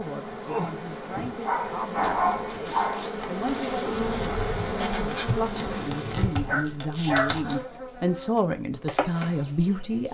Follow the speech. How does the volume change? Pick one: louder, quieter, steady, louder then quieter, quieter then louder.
louder.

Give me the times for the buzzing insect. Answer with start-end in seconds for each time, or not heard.
0.0-10.0.